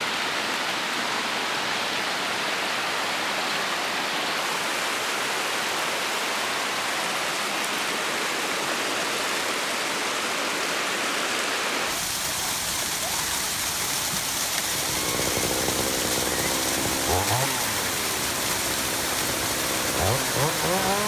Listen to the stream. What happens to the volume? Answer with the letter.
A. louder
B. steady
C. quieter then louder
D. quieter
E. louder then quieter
B.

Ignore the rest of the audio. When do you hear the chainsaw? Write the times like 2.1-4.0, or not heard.
14.7-21.0.